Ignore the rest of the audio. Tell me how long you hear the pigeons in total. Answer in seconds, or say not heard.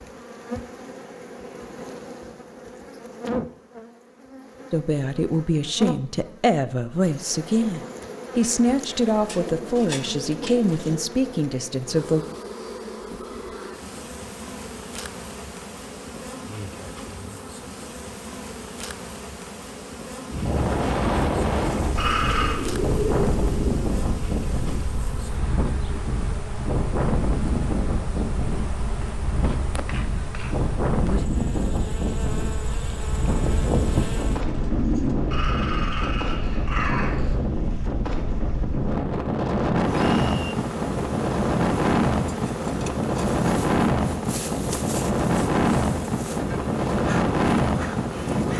6 s.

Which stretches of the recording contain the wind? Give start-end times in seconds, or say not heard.
20.3-48.5.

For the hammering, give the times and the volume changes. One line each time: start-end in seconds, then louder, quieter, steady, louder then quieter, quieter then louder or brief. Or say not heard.
not heard.